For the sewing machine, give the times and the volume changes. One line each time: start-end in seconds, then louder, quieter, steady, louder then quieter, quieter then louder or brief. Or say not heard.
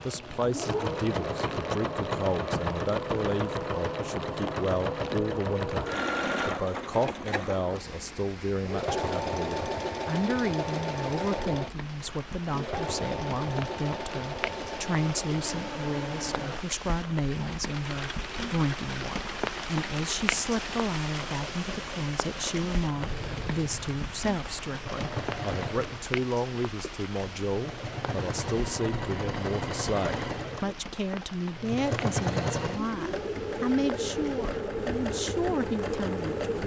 0.0-36.6 quieter then louder.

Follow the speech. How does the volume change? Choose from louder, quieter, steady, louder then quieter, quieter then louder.
steady.